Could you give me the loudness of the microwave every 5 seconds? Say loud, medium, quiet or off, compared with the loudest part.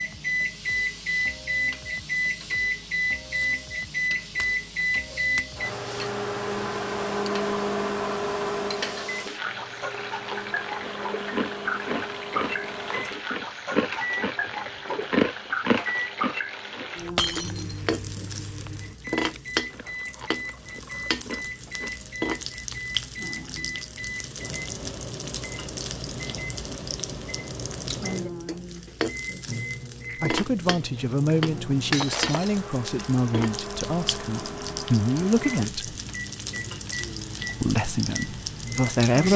loud, loud, medium, medium, medium, medium, medium, medium.